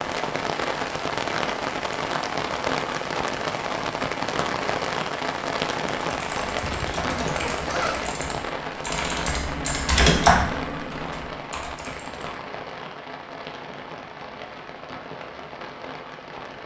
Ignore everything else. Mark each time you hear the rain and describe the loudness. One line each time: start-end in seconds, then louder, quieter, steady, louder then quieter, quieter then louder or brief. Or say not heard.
0.0-16.6 quieter.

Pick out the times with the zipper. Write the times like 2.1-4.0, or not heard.
6.6-8.2.